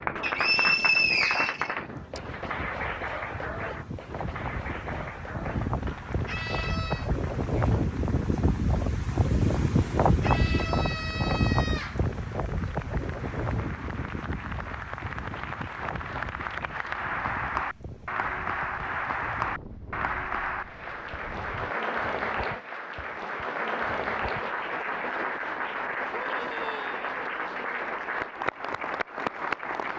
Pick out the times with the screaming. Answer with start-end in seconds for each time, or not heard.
6.2-7.1, 10.2-12.0, 26.1-27.1.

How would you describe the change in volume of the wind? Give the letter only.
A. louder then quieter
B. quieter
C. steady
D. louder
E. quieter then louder
A.